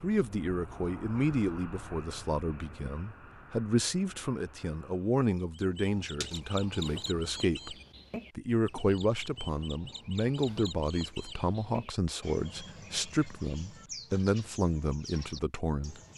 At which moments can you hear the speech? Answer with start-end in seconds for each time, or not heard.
0.0-7.8, 8.3-16.0.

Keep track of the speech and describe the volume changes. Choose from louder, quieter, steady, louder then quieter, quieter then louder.
steady.